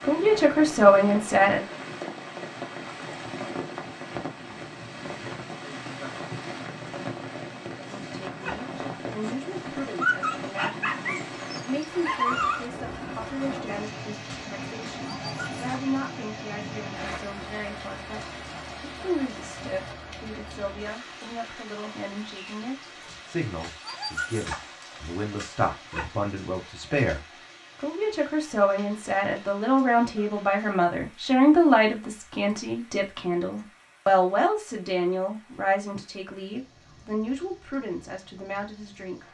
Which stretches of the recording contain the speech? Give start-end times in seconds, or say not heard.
0.1-1.6, 7.8-39.2.